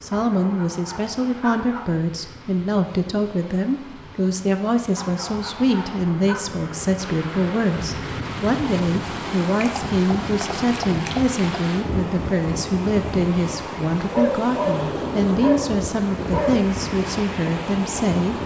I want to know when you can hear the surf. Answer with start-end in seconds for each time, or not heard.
0.0-18.4.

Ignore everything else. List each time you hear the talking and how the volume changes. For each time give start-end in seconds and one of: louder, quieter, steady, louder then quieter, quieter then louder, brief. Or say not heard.
0.0-18.4 steady.